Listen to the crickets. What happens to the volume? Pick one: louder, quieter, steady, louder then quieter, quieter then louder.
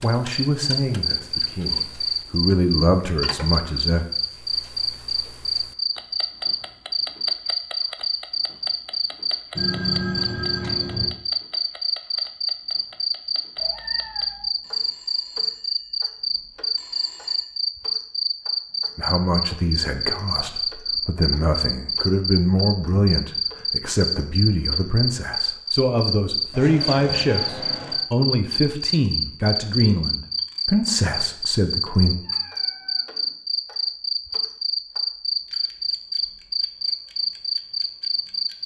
steady.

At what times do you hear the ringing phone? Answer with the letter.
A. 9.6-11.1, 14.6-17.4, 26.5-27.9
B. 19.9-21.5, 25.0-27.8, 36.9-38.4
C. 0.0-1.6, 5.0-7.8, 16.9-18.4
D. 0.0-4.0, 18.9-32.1
A.